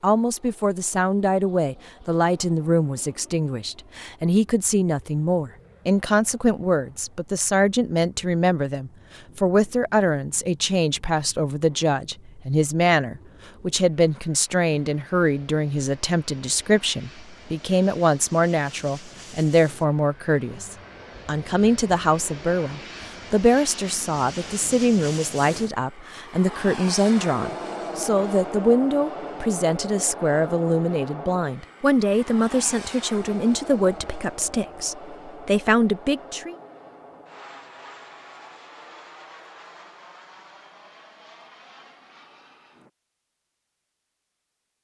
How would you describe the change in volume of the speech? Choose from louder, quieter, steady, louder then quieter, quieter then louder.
steady.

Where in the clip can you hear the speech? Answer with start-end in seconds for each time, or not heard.
0.0-36.5.